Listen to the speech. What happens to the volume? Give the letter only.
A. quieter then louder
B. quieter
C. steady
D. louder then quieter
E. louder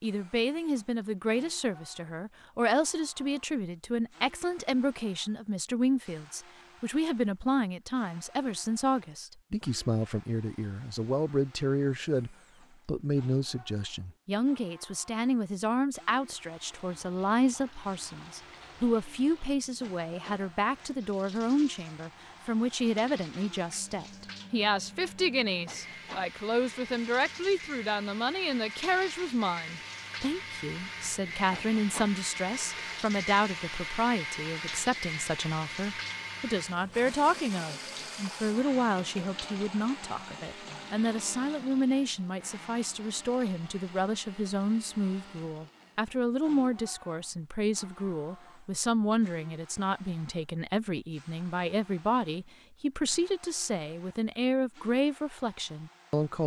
C.